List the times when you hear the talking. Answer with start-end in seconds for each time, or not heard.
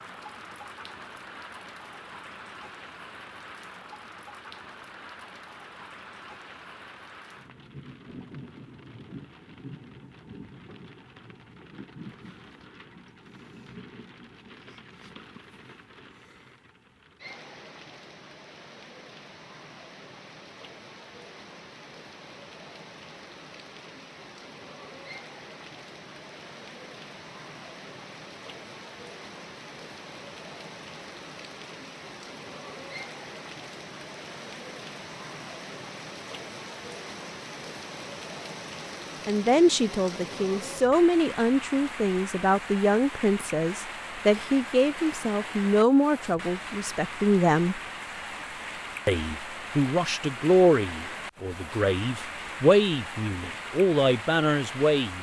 39.2-47.8, 49.0-55.1.